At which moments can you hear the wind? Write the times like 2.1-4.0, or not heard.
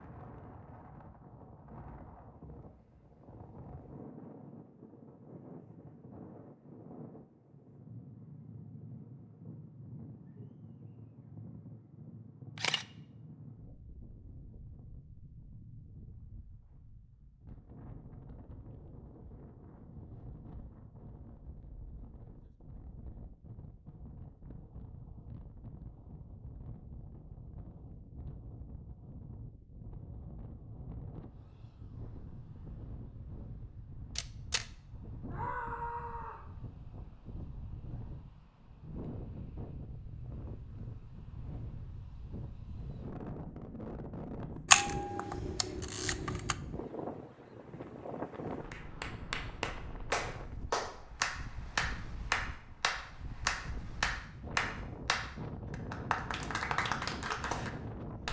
0.0-58.2.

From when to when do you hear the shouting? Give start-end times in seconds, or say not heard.
35.3-36.5.